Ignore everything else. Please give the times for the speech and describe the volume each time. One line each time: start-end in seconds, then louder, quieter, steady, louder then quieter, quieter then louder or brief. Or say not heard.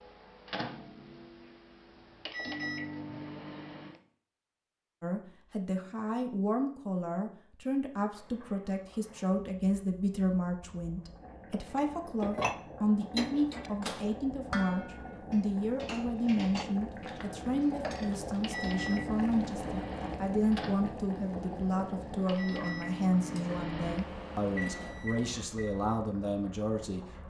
5.0-27.2 steady.